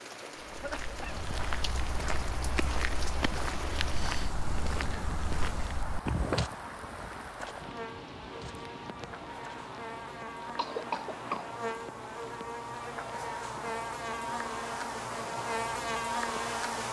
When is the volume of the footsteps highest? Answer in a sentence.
The loudest moment of the footsteps is at 6 seconds.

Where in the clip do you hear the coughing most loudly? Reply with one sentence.
The volume of the coughing peaks at 11 seconds.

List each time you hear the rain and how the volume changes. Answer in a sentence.
You can hear the rain from 0.0 to 16.6 s, getting quieter.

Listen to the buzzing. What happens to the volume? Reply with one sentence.
The loudness of the buzzing goes up.